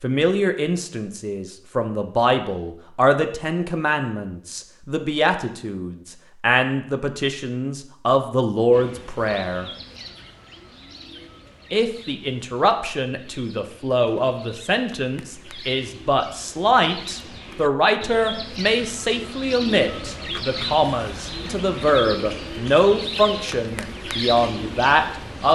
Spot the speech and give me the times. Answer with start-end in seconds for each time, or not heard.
0.0-9.7, 11.7-25.5.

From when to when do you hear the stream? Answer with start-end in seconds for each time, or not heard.
not heard.